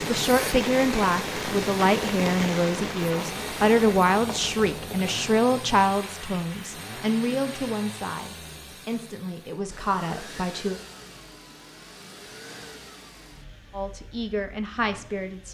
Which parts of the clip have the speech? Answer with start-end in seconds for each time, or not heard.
0.1-10.8, 13.7-15.5.